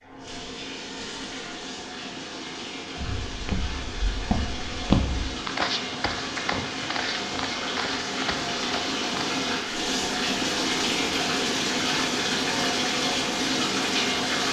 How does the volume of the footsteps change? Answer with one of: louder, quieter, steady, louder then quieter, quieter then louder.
louder then quieter.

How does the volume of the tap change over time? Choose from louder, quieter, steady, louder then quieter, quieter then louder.
louder.